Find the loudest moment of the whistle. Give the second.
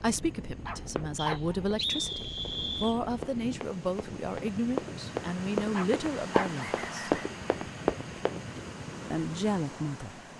2 s.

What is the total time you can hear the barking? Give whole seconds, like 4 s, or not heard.
2 s.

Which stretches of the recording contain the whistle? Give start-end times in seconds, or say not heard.
1.1-3.0, 6.5-7.2.